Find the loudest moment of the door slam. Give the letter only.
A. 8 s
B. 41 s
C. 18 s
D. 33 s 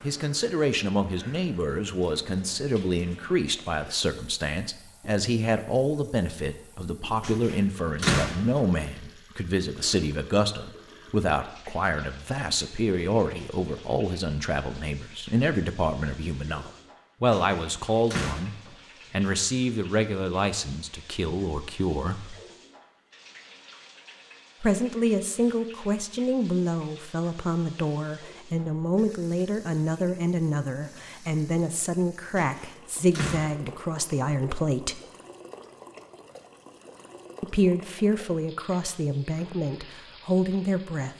A.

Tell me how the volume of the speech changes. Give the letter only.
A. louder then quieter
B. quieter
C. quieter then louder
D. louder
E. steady
E.